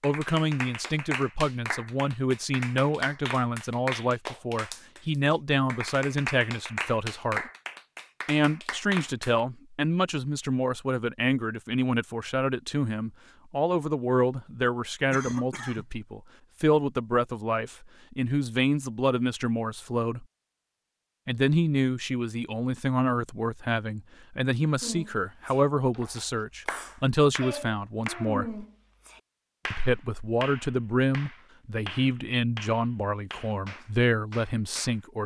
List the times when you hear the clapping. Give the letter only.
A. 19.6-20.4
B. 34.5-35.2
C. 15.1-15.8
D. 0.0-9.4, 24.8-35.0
D.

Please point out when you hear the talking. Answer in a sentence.
You can hear the talking from 0.0 to 7.5 s, from 8.2 to 20.2 s, from 21.2 to 28.6 s and from 29.7 to 35.2 s.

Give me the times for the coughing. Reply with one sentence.
You can hear the coughing from 15.1 to 15.8 s.